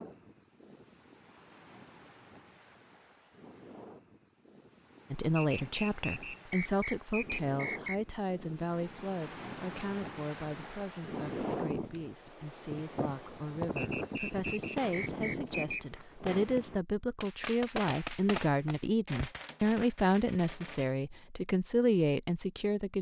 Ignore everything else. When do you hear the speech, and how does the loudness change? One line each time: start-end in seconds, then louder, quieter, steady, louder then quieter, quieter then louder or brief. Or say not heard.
5.1-22.9 quieter then louder.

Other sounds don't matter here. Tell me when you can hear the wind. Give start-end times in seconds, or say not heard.
0.0-16.8.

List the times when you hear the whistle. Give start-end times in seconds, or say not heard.
5.3-8.0, 13.8-15.8.